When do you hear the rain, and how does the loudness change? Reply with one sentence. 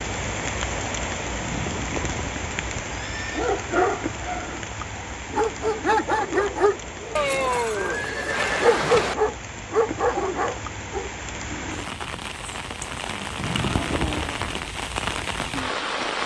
The rain can be heard from 0.0 to 16.2 s, getting quieter then louder.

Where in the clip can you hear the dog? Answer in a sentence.
You can hear the dog from 3.3 to 11.1 s.